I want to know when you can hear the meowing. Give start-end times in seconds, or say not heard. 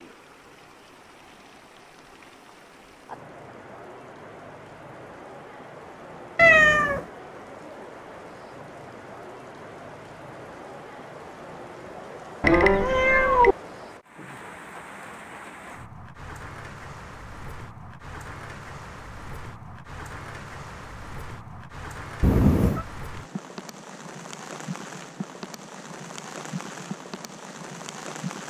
6.3-7.0, 12.4-13.6, 22.2-22.9.